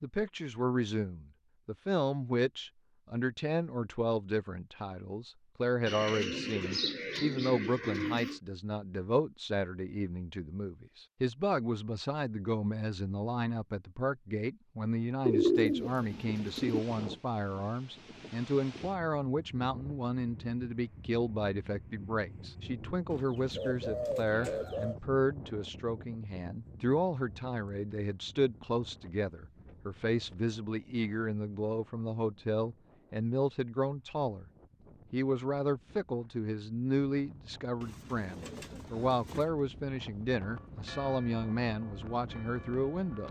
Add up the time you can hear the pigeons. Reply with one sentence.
You can hear the pigeons for 8 seconds altogether.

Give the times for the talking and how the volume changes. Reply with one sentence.
The talking can be heard from 0.0 to 34.5 s, at a steady volume; and from 35.1 to 43.2 s, at a steady volume.